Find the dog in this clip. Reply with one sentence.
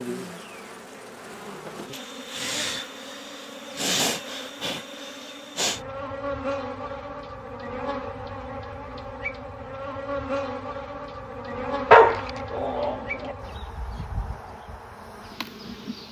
You can hear the dog from 11.9 to 13.3 s.